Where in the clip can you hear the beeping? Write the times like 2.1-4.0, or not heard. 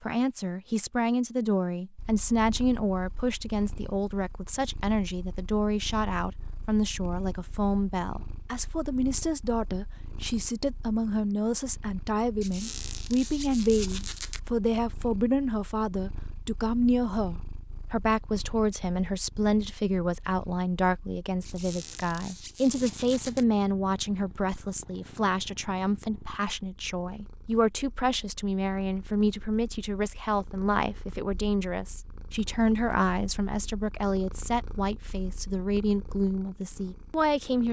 not heard.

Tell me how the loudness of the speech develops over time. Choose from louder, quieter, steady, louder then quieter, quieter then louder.
steady.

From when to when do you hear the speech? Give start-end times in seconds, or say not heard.
0.0-37.6.